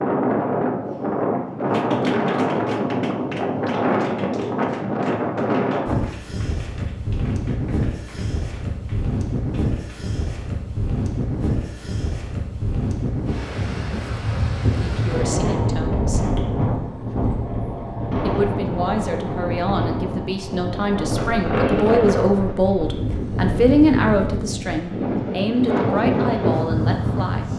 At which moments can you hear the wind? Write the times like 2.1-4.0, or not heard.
0.0-27.5.